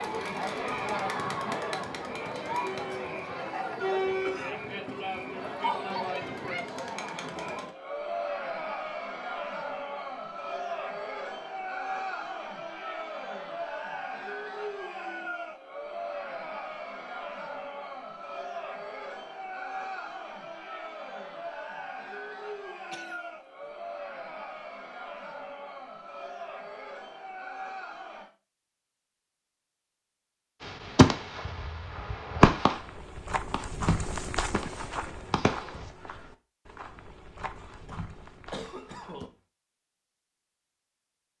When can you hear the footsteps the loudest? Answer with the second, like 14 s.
34 s.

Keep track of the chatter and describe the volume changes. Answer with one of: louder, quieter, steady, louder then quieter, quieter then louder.
quieter.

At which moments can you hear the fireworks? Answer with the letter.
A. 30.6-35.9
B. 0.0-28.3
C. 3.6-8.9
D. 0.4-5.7
A.